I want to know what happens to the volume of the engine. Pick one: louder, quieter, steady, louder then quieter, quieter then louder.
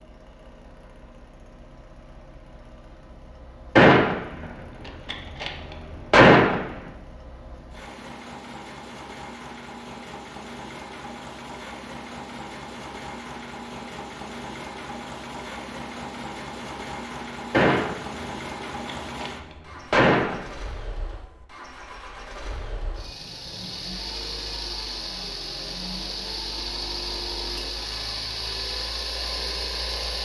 louder.